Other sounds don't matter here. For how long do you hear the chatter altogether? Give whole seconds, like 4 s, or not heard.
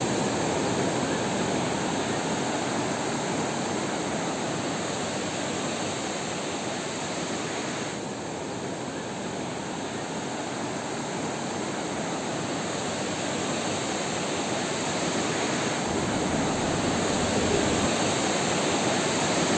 not heard.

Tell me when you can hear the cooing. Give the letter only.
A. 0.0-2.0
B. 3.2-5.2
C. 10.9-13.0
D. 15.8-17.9
D.